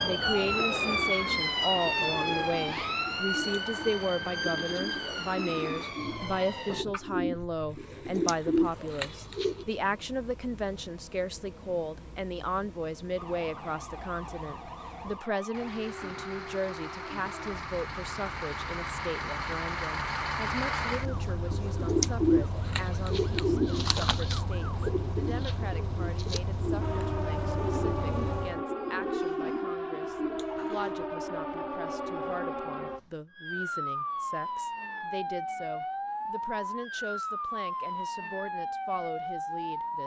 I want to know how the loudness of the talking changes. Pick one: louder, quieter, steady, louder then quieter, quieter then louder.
quieter.